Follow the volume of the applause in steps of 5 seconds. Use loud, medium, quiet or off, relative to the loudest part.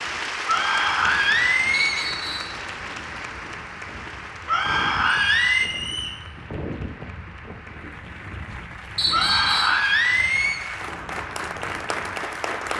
loud, medium, loud.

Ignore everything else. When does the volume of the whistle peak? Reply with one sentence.
The volume of the whistle peaks at 9 seconds.